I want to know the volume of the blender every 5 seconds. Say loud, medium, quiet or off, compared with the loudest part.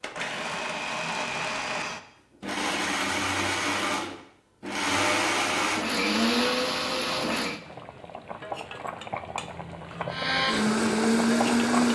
medium, loud, loud.